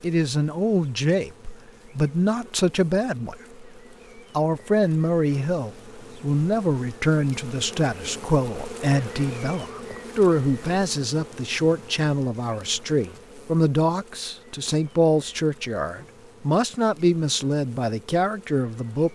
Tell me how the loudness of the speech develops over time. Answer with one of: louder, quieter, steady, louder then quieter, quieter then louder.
steady.